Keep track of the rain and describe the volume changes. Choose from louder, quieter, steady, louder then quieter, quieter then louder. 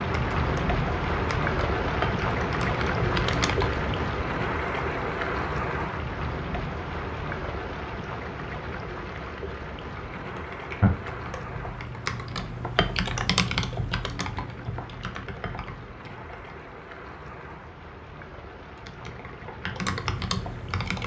quieter.